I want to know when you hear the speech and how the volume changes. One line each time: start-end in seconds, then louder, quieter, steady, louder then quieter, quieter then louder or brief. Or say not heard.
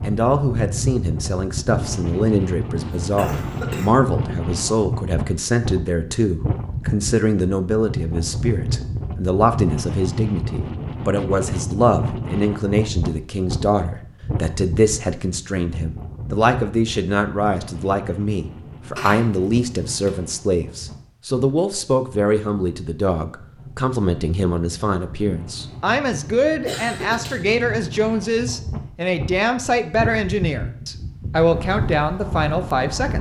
0.0-33.1 steady.